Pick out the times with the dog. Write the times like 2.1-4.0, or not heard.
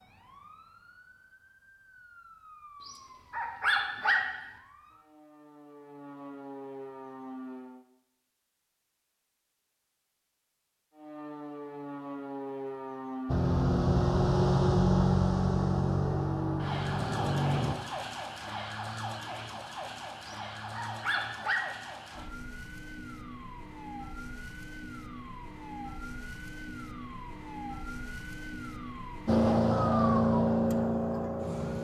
2.8-4.5, 20.2-21.9.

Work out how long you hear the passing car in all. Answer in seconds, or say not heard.
7 s.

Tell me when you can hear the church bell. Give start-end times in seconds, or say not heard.
not heard.